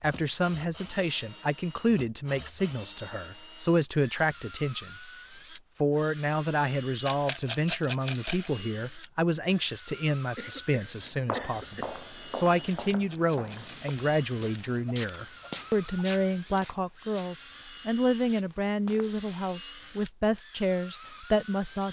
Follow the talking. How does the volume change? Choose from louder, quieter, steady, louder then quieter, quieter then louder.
steady.